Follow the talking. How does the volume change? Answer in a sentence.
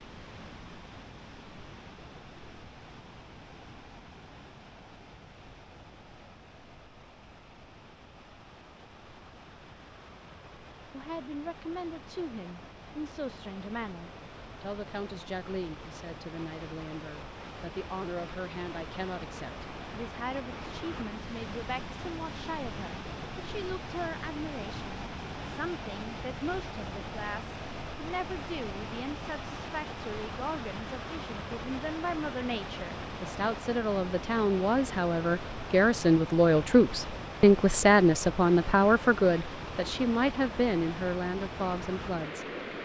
The loudness of the talking goes up.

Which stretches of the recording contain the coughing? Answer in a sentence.
The coughing can't be heard in this clip.